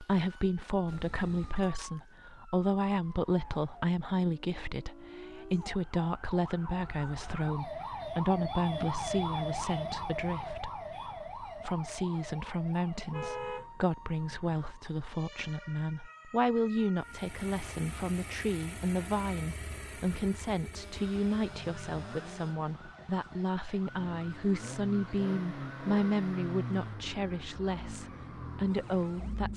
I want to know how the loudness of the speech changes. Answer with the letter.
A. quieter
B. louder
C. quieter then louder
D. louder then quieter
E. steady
E.